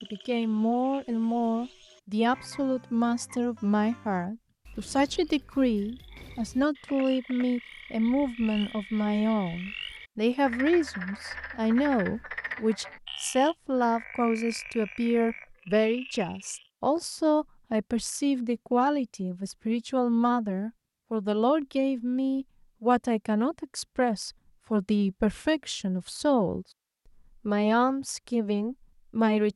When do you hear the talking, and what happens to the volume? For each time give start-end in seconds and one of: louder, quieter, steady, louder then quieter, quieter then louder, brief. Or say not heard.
0.0-26.6 steady
27.4-29.5 brief.